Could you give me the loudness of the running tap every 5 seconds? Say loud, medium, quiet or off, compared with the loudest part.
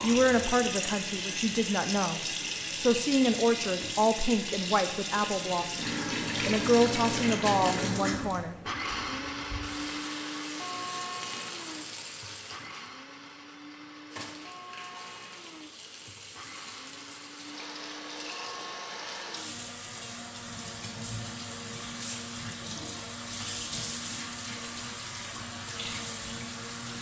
loud, loud, medium, medium, medium, medium.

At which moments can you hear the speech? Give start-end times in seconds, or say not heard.
0.0-8.6.